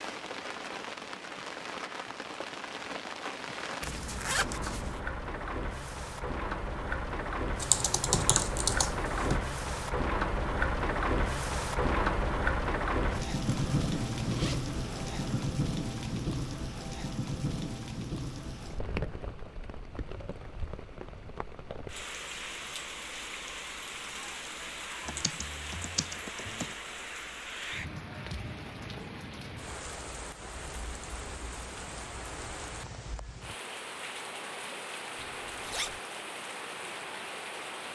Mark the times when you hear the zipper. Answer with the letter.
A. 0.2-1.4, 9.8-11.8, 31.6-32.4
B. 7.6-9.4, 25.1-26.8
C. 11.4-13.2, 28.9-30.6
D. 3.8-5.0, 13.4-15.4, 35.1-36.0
D.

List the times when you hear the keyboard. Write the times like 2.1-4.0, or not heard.
7.6-9.4, 25.1-26.8.